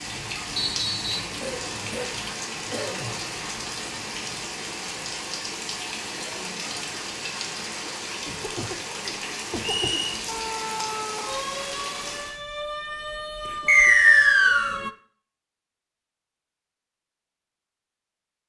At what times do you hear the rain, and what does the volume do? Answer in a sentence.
You can hear the rain from 0.0 to 12.4 s, at a steady volume.